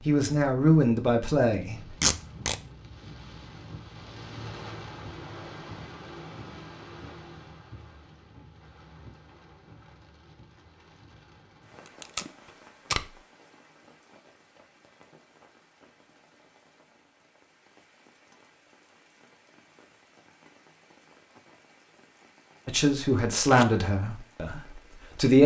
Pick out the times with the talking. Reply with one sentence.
You can hear the talking from 0.1 to 1.8 s and from 22.6 to 25.4 s.